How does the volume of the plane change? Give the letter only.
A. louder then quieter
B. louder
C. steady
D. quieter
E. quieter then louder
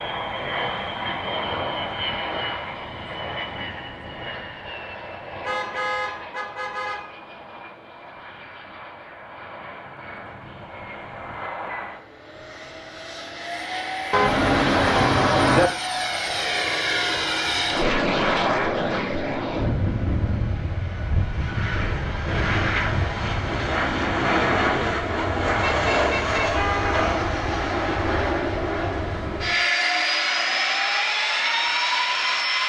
E.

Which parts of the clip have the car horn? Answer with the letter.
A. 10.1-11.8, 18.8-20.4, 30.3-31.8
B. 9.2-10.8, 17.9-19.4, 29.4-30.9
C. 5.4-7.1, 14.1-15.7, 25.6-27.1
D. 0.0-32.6
C.